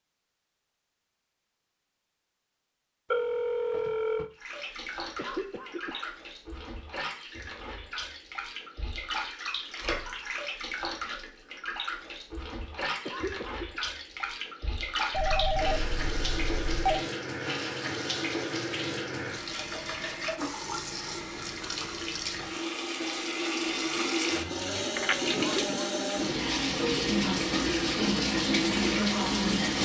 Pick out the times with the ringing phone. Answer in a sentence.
You can hear the ringing phone from 3.1 to 4.3 s, from 15.1 to 17.1 s and from 24.9 to 25.4 s.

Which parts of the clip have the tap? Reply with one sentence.
The tap can be heard from 4.3 to 29.8 s.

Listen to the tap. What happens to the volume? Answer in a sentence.
The loudness of the tap goes up.